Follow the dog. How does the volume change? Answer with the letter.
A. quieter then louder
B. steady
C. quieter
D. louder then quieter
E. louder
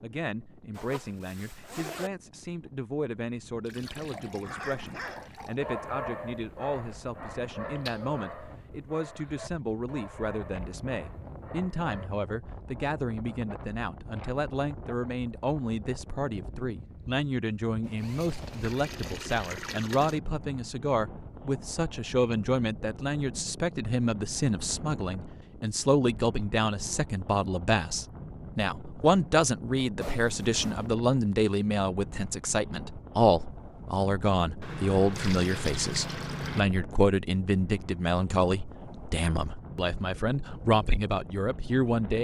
C.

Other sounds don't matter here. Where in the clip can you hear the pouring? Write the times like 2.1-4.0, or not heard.
3.6-5.6, 18.6-20.2, 34.6-36.6.